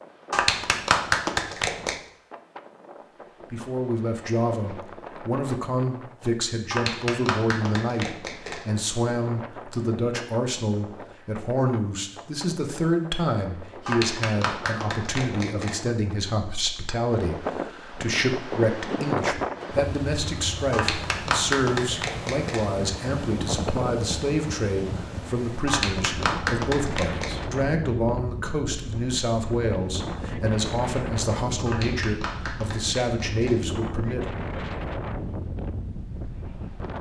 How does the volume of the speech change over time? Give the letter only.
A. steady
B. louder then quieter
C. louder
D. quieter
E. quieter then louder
A.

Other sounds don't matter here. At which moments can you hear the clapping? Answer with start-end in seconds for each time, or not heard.
0.3-2.0, 6.7-8.7, 13.8-15.8, 20.7-22.7, 25.6-27.4, 31.6-33.6.